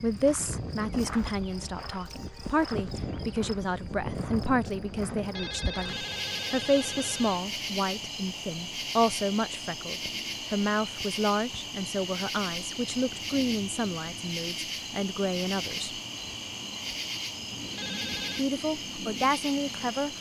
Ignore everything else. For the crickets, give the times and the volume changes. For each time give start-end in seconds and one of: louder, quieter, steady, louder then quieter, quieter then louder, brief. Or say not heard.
0.0-20.1 steady.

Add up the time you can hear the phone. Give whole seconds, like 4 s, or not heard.
3 s.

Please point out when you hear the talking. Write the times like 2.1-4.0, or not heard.
0.0-15.9, 18.4-20.1.